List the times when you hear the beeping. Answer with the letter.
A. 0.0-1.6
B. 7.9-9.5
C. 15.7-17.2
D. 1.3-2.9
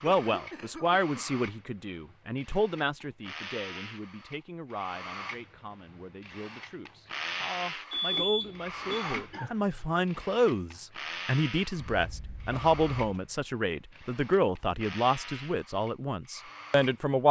B.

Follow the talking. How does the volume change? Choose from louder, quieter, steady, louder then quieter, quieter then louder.
quieter then louder.